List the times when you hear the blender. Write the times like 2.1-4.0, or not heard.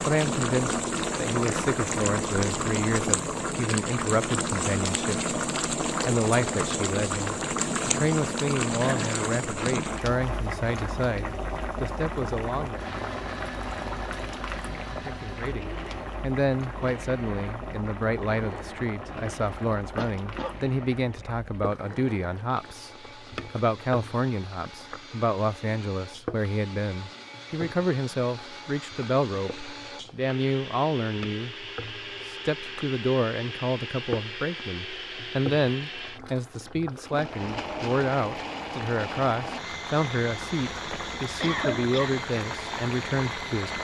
12.8-43.8.